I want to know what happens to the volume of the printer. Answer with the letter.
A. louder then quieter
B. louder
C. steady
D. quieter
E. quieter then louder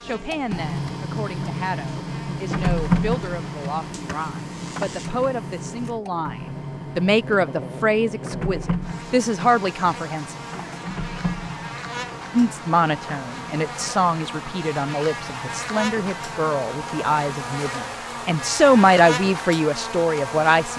D.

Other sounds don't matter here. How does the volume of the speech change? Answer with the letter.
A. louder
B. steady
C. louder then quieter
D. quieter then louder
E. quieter
A.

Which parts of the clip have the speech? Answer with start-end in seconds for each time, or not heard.
0.0-6.3, 7.0-10.3, 12.3-20.7.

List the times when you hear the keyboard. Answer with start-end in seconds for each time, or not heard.
not heard.